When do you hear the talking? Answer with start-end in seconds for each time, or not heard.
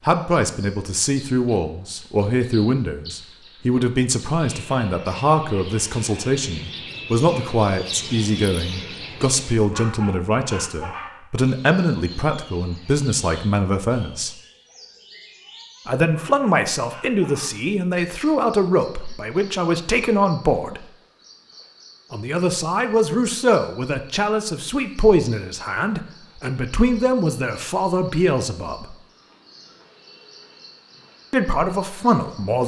0.1-14.3, 15.8-20.9, 22.1-28.9, 31.3-32.6.